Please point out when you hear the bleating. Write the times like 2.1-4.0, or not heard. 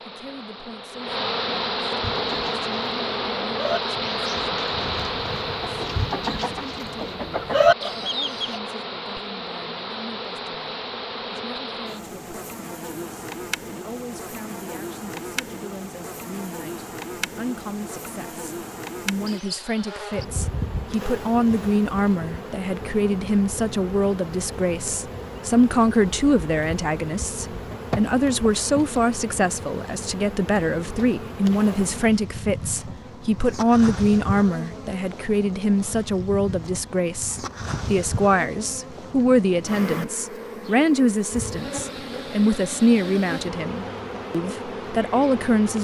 not heard.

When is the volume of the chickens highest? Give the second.
8 s.